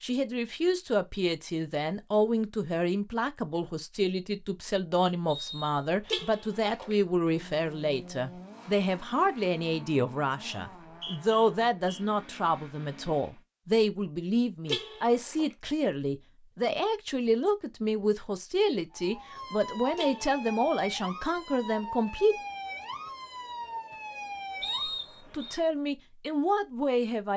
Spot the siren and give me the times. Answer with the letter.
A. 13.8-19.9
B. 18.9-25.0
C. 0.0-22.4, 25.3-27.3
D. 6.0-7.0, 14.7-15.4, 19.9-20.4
B.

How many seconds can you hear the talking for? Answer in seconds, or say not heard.
24 s.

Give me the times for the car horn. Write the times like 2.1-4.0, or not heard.
6.0-7.0, 14.7-15.4, 19.9-20.4.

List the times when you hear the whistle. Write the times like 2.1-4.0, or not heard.
5.2-6.2, 10.8-12.0, 24.6-25.6.